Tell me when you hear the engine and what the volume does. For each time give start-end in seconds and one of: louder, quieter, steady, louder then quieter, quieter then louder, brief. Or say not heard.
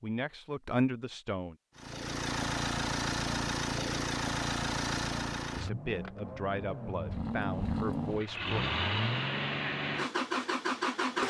1.8-11.2 quieter then louder.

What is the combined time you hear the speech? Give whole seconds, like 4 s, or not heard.
5 s.